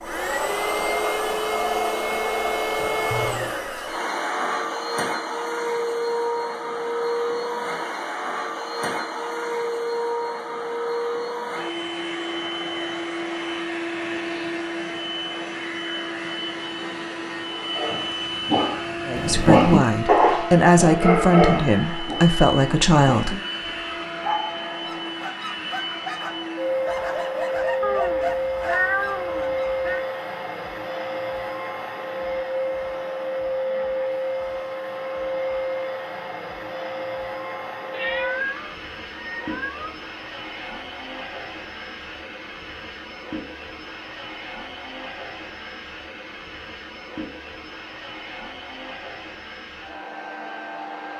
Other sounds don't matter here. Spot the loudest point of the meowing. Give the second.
29 s.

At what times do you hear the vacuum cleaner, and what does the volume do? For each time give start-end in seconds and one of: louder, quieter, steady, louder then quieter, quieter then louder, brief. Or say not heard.
0.0-51.1 quieter.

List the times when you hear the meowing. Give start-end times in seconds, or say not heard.
2.8-3.5, 27.8-30.0, 37.9-40.0.